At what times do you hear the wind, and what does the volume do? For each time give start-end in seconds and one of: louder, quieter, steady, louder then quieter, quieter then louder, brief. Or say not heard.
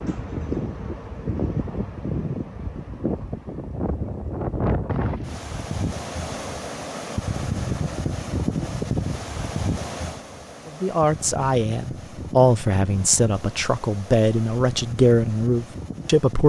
0.0-16.4 quieter.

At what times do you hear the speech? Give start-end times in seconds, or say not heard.
10.7-16.4.